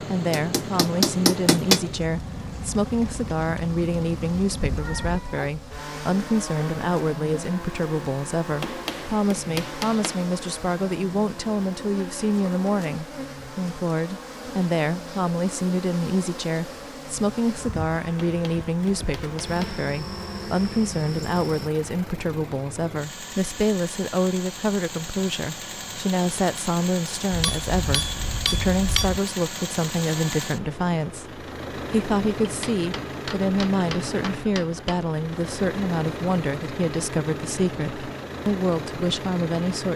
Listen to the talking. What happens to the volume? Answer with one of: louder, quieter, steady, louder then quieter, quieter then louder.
steady.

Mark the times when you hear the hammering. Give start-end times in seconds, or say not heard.
0.3-1.8, 8.6-10.2, 18.2-19.8, 27.3-29.2, 32.4-35.1.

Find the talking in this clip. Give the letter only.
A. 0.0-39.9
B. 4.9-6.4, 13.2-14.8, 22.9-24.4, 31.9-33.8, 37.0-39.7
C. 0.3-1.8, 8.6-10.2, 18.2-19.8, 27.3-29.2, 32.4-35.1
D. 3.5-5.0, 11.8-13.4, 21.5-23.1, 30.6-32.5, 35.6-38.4
A.